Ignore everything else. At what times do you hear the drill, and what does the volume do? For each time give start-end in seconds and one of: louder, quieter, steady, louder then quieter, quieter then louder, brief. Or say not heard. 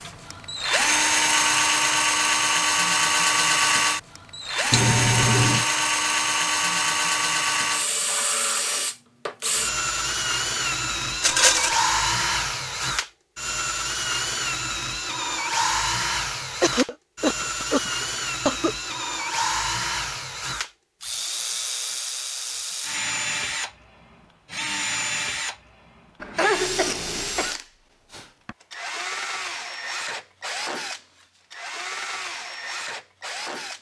0.0-33.7 quieter.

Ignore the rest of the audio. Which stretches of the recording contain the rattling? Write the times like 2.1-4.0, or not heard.
11.2-11.8.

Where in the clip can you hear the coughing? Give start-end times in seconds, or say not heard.
4.7-5.7, 16.6-18.8, 26.2-27.6.